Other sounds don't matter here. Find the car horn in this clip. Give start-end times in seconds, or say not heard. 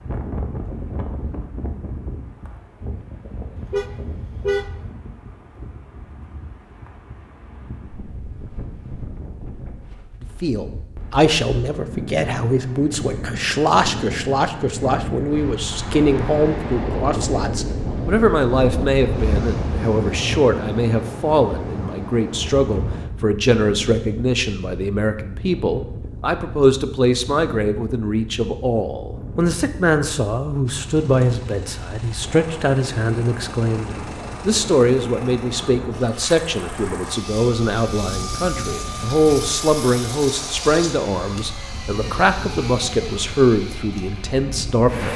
3.5-5.0.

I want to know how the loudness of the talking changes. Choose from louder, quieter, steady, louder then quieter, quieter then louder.
steady.